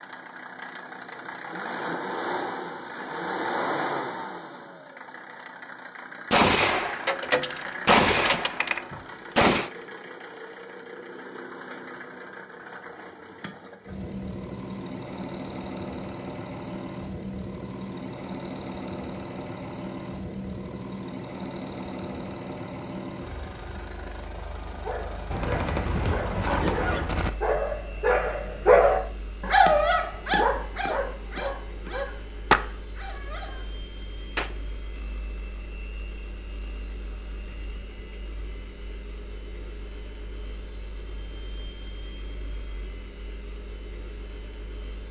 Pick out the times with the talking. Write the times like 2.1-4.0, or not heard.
not heard.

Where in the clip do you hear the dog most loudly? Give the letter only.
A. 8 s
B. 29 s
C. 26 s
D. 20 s
B.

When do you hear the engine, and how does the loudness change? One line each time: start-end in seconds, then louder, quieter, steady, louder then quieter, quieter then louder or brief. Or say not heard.
0.0-45.0 quieter.